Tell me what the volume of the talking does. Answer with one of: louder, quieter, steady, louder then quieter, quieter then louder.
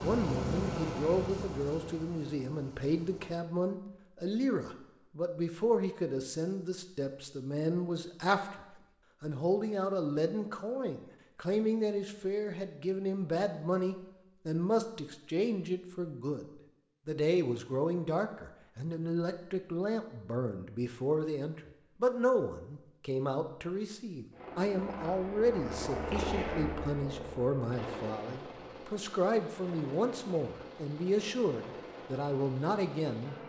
steady.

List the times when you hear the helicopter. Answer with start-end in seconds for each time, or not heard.
0.0-3.4, 24.3-33.4.